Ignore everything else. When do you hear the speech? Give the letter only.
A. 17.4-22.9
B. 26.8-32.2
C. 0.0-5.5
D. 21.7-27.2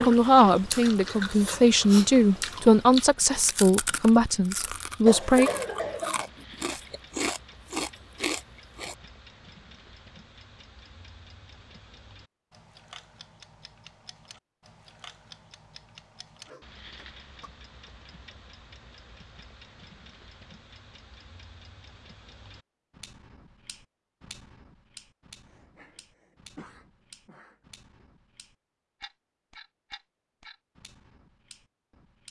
C.